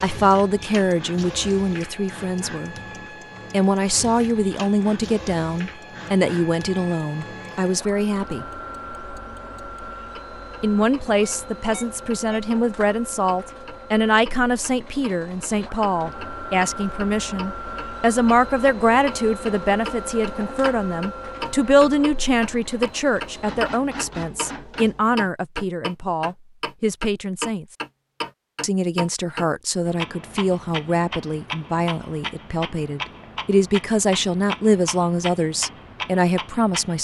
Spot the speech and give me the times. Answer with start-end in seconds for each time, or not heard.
0.0-2.8, 3.5-8.4, 10.6-27.6, 28.6-36.9.